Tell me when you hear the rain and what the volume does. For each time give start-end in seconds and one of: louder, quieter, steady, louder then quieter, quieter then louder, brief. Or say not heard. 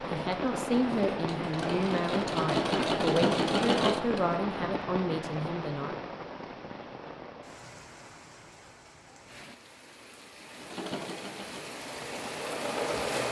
0.0-13.2 quieter then louder.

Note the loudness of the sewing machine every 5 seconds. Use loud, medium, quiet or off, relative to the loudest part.
loud, off, medium.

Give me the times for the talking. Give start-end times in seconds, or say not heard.
0.0-6.0.